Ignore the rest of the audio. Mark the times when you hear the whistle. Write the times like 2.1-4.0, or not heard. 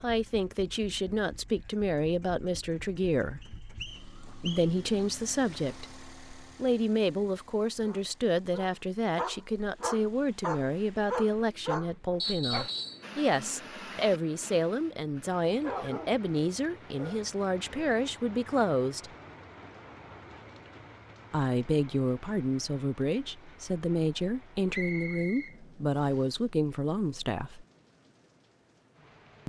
3.4-4.7, 12.2-13.1, 24.7-26.2.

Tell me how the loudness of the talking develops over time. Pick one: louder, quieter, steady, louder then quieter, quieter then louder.
steady.